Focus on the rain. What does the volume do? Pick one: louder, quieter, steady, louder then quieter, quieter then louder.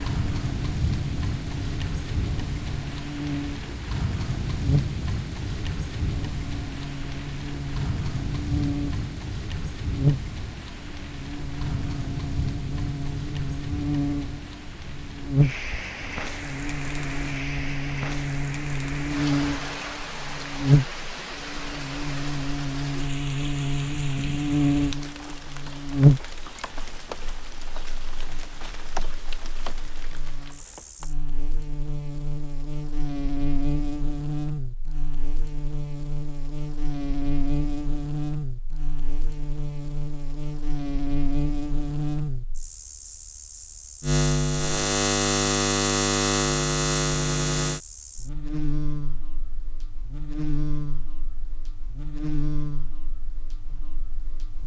quieter.